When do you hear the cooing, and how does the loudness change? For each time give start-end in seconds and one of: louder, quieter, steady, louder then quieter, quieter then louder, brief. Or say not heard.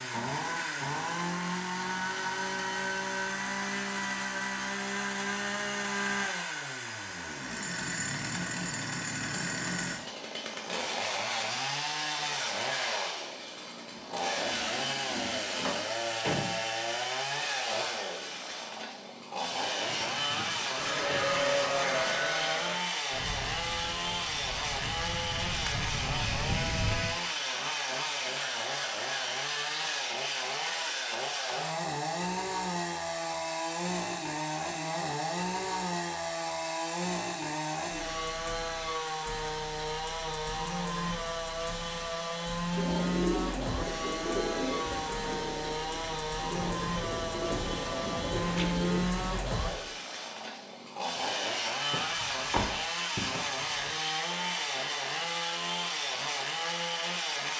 42.7-49.0 quieter then louder.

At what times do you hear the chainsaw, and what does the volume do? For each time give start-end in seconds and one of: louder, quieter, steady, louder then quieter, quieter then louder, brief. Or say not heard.
0.0-57.5 steady.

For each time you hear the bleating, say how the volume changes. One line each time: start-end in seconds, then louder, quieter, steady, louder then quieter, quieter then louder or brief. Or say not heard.
20.8-27.1 quieter then louder.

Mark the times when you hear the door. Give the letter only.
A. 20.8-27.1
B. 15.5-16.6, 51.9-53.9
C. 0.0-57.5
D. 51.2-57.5
B.